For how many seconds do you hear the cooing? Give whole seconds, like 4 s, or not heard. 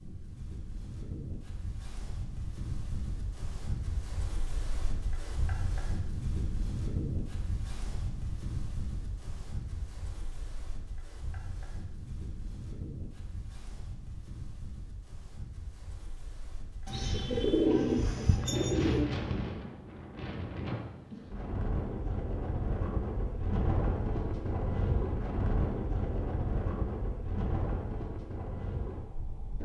2 s.